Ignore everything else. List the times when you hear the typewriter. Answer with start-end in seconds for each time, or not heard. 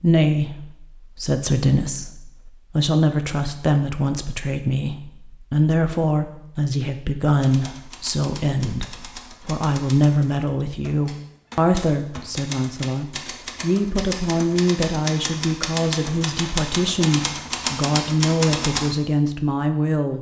7.3-18.9.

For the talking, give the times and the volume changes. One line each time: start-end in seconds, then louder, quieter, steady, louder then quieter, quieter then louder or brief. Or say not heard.
0.0-20.1 steady.